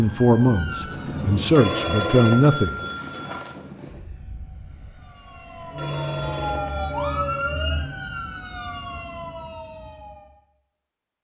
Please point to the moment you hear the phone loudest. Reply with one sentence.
The volume of the phone peaks at 2 seconds.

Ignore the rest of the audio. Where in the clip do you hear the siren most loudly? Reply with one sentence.
The volume of the siren peaks at 7 seconds.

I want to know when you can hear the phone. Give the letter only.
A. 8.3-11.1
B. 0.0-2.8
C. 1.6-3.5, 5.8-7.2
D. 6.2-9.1
C.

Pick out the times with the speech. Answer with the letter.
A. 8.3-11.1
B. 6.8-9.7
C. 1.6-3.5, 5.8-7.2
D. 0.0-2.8
D.